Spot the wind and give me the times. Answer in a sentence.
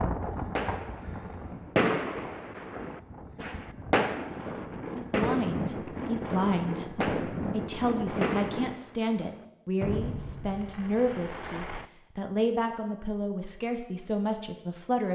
You can hear the wind from 0.0 to 8.8 s.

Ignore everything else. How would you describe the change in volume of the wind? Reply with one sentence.
The loudness of the wind goes down, then up.